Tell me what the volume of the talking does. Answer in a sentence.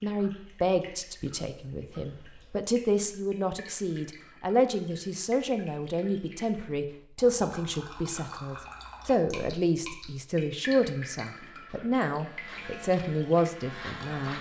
The loudness of the talking stays about the same.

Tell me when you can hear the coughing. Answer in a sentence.
The coughing can't be heard in this clip.